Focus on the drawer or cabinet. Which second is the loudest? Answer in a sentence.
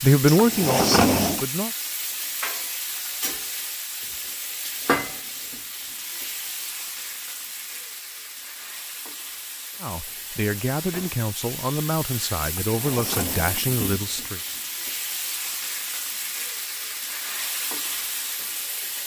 The volume of the drawer or cabinet peaks at 1 second.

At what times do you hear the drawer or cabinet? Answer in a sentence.
The drawer or cabinet can be heard from 0.2 to 1.4 s and from 12.4 to 14.1 s.